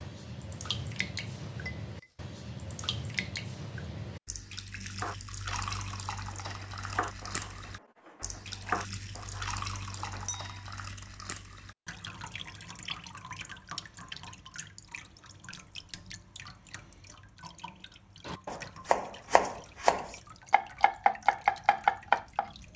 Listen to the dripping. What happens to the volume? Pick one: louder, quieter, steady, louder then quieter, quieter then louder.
quieter.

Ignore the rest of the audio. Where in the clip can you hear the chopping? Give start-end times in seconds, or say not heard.
5.0-10.3, 18.2-22.5.